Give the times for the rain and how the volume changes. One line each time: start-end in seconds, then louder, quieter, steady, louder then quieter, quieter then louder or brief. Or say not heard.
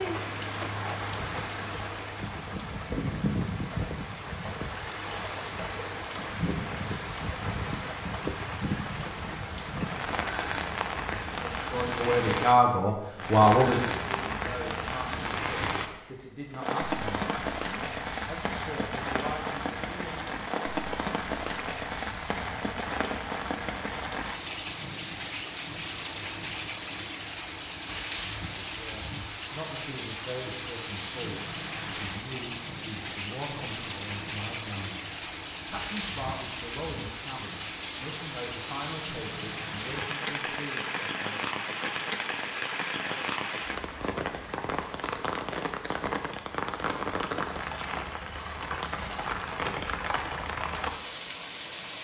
0.0-51.9 steady.